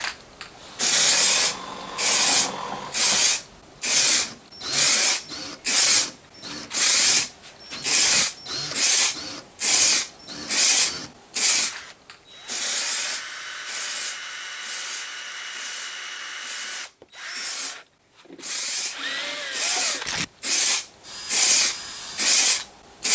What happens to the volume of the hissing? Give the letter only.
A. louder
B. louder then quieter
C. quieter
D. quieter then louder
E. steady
D.